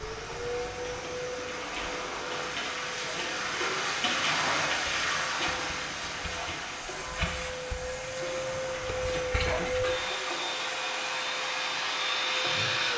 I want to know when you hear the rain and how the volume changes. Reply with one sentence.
The rain can be heard from 0.0 to 12.9 s, getting louder then quieter.